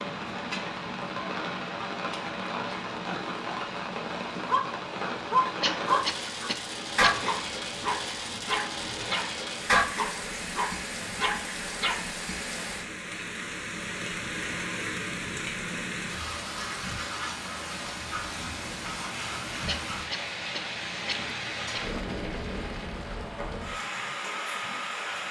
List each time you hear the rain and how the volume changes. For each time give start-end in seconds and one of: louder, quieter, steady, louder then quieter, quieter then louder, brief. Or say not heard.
0.0-25.2 steady.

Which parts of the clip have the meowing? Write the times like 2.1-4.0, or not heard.
not heard.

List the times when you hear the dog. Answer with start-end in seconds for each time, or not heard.
4.5-12.1.